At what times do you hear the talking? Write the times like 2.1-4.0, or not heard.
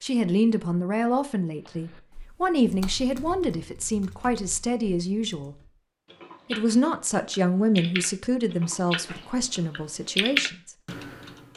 0.0-5.5, 6.5-10.8.